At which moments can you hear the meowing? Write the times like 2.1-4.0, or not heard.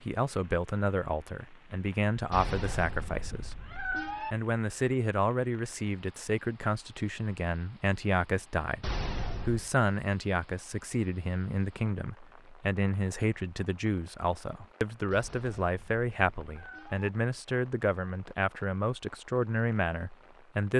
2.3-4.3, 8.8-9.7, 15.1-17.1.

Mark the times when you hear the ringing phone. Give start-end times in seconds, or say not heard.
not heard.